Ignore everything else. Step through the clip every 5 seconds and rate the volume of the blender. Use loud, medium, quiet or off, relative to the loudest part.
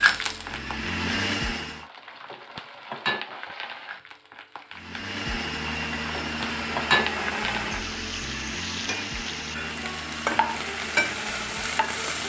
loud, loud, medium.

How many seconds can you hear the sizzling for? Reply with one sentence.
The sizzling can be heard for 12 seconds in total.